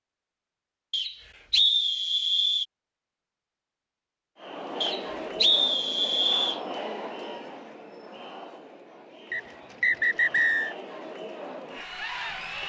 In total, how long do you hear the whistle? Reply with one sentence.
You can hear the whistle for 5 seconds altogether.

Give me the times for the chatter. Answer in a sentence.
The chatter can be heard from 4.3 to 12.6 s.